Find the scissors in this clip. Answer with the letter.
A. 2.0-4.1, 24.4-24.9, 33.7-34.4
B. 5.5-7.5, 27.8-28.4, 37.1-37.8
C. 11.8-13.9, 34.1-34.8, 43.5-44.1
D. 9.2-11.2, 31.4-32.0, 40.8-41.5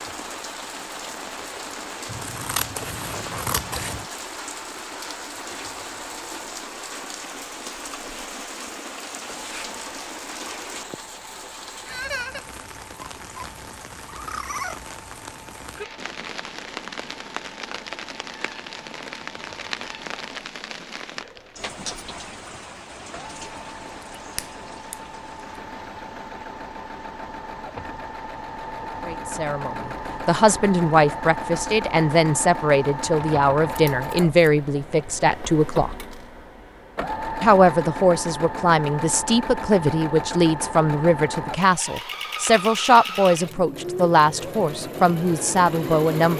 A.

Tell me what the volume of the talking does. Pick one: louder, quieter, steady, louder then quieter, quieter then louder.
steady.